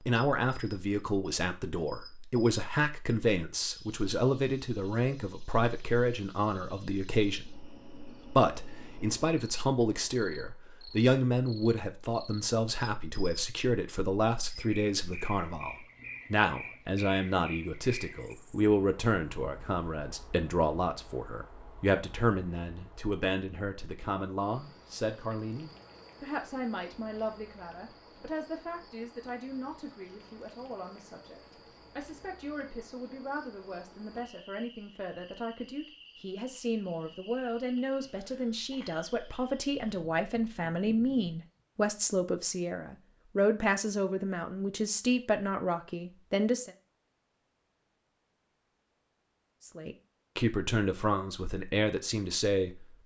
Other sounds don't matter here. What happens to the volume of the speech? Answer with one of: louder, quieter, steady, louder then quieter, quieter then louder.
quieter then louder.